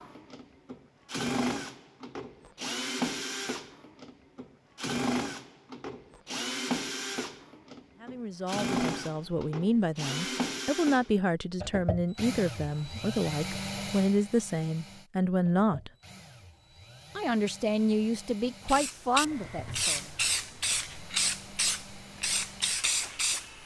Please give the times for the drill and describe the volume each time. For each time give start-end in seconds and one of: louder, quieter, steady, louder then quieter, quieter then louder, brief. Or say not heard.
0.0-23.6 quieter.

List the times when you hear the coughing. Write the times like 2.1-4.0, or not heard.
not heard.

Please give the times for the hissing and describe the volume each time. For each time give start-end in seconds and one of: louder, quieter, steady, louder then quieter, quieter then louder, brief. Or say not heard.
18.6-23.6 steady.